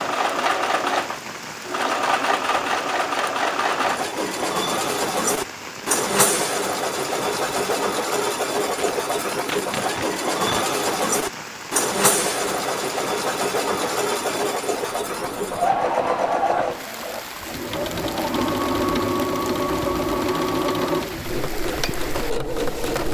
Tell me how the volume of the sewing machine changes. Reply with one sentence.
The loudness of the sewing machine stays about the same.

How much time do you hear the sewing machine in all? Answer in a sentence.
The sewing machine can be heard for 23 seconds in total.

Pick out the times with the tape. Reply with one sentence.
You can hear the tape from 8.7 to 10.7 s.